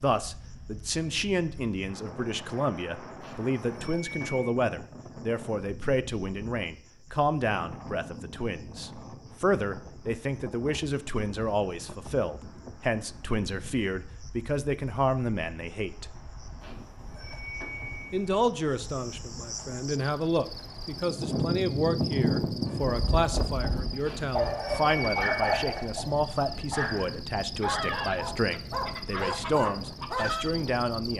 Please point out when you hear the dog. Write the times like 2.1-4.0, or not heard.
22.6-30.5.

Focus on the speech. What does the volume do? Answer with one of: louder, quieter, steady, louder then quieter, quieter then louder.
steady.